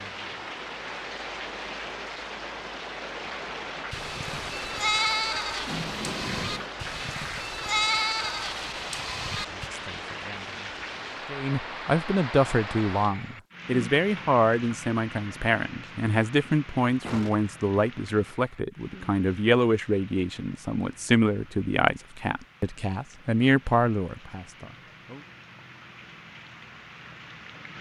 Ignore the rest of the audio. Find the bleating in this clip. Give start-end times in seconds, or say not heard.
3.9-9.7.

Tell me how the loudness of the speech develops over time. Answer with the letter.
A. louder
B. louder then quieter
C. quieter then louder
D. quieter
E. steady
E.